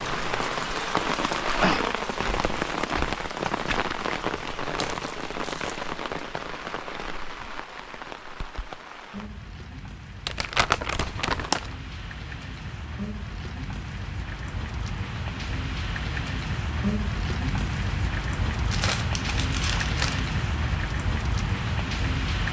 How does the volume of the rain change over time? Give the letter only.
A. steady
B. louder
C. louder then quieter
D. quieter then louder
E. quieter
D.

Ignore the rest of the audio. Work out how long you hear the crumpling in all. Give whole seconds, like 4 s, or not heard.
4 s.